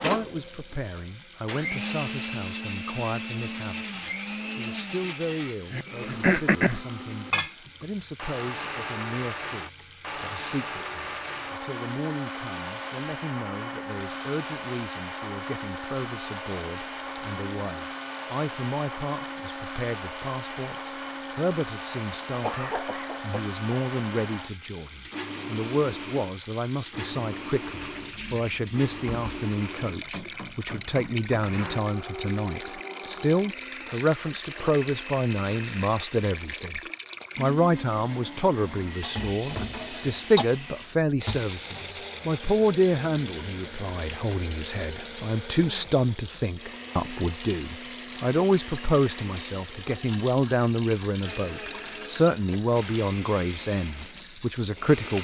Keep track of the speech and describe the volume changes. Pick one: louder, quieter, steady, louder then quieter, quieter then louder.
louder.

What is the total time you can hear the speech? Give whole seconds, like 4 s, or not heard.
55 s.